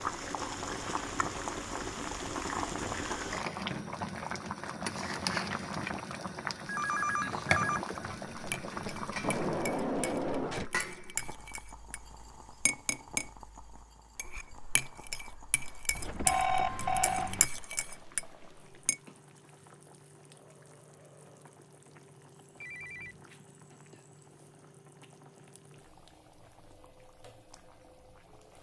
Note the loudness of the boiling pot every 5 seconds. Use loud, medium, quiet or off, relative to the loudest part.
loud, loud, medium, quiet, quiet, quiet.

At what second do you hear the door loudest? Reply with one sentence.
The loudest moment of the door is at 10 seconds.